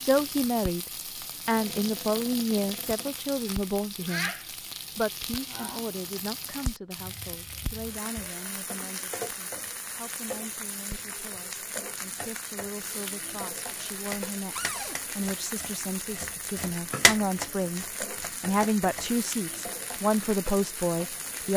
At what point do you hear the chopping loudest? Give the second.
17 s.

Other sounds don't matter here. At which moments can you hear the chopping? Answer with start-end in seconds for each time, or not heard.
14.1-19.1.